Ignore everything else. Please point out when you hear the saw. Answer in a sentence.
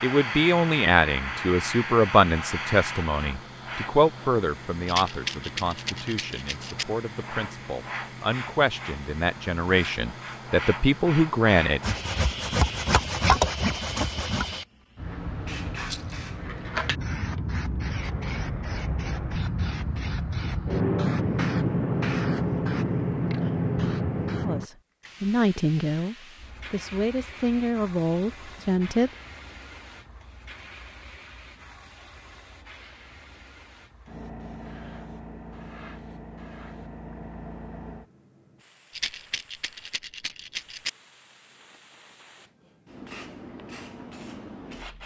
The saw can be heard from 11.8 to 14.6 s.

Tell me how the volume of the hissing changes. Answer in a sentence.
The volume of the hissing goes up, then down.